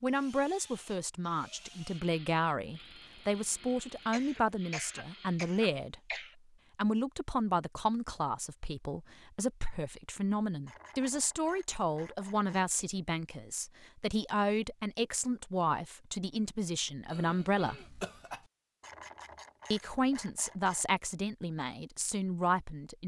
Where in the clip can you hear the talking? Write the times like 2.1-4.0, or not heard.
0.0-6.0, 6.8-17.9, 19.7-23.0.